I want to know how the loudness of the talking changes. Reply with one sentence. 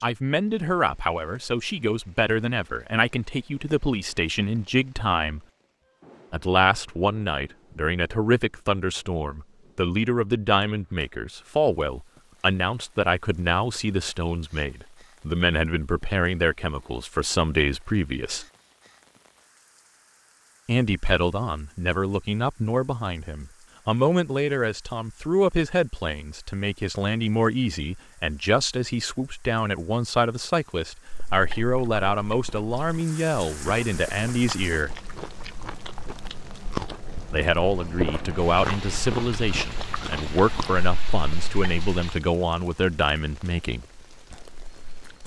The loudness of the talking stays about the same.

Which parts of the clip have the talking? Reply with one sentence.
You can hear the talking from 0.0 to 5.4 s, from 6.3 to 18.4 s, from 20.6 to 34.9 s and from 37.3 to 43.9 s.